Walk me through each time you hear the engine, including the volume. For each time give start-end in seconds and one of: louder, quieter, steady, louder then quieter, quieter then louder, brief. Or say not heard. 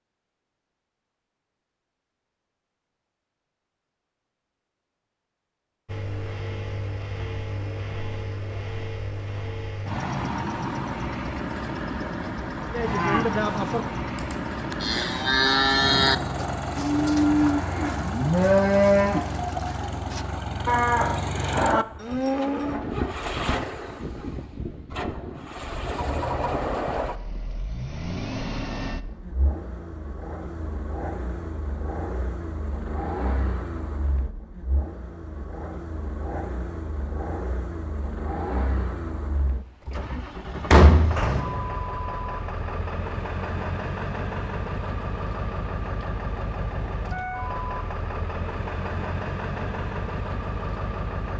5.8-51.3 steady.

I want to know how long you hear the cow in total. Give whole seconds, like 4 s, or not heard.
10 s.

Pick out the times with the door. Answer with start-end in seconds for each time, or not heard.
39.9-41.1.